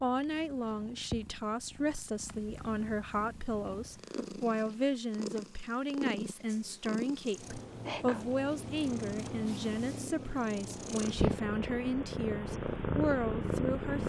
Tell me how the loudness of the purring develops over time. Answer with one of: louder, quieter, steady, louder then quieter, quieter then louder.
louder.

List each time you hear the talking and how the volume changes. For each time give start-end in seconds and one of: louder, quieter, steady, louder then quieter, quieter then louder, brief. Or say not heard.
0.0-14.0 steady.